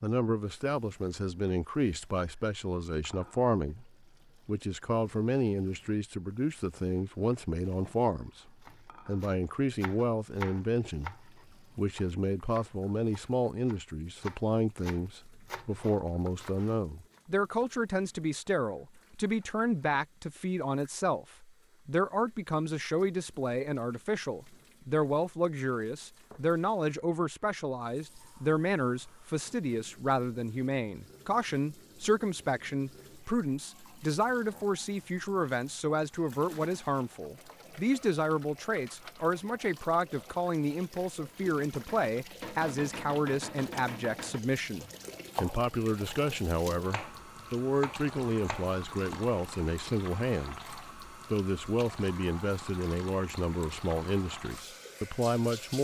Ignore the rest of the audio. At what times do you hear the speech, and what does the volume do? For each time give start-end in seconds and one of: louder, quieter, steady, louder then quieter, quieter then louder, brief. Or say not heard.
0.0-55.7 steady.